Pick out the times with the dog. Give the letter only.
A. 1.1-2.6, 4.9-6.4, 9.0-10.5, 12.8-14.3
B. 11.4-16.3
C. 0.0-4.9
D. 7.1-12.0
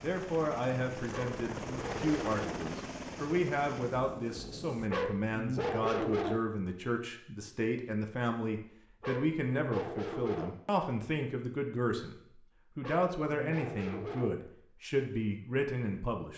A.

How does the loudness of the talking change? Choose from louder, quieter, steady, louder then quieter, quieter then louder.
steady.